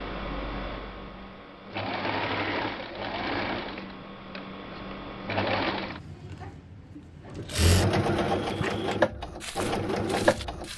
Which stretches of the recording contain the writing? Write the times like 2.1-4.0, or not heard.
not heard.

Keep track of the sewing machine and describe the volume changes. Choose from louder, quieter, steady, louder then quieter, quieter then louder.
louder.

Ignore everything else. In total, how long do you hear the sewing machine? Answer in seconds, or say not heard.
11 s.